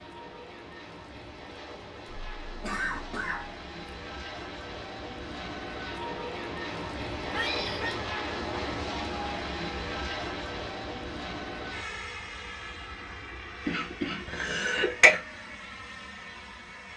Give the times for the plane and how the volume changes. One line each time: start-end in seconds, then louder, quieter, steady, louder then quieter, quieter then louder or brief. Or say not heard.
0.0-16.9 louder then quieter.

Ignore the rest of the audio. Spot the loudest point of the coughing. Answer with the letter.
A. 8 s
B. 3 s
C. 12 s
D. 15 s
D.